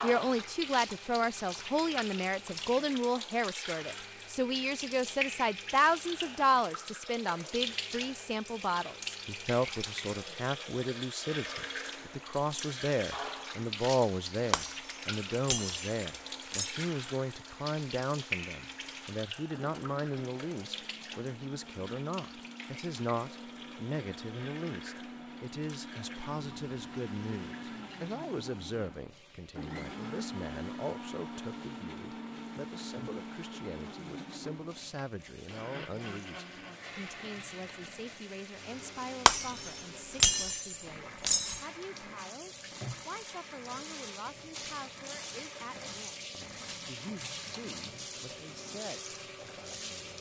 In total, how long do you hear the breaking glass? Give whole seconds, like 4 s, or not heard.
5 s.